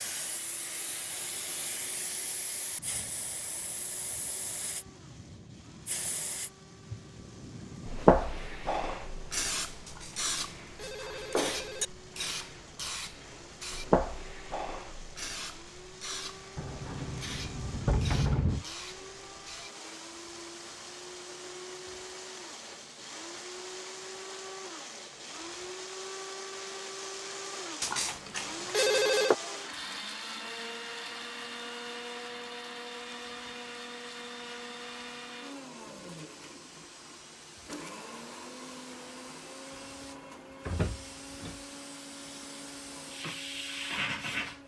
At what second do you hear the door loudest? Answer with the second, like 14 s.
18 s.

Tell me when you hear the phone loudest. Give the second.
29 s.